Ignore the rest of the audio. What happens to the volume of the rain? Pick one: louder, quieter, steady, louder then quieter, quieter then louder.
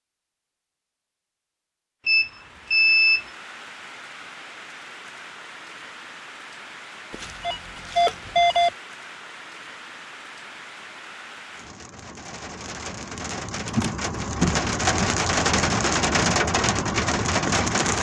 louder.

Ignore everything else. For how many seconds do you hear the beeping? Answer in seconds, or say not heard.
3 s.